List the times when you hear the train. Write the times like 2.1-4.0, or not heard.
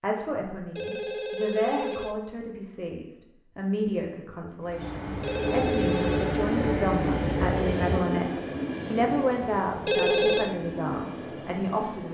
4.6-12.0.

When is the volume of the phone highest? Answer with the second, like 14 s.
10 s.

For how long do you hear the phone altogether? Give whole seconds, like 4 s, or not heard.
3 s.